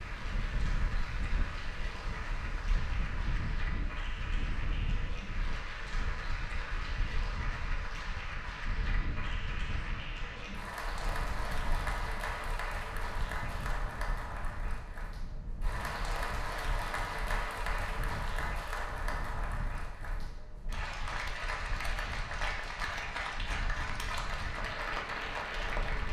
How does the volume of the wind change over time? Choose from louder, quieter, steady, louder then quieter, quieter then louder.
quieter.